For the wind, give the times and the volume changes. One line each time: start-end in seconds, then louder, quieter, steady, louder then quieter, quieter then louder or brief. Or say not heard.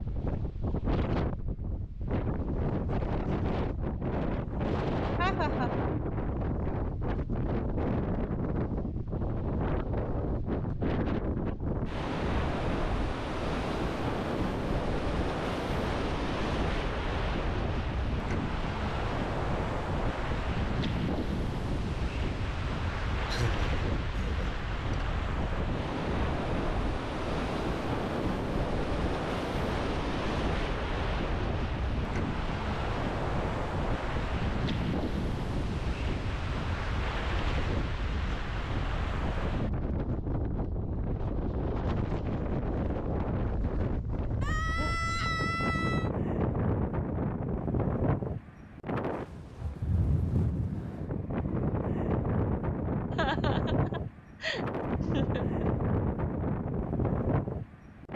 0.0-58.1 steady.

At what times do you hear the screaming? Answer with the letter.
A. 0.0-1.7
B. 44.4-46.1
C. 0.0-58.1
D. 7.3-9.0
B.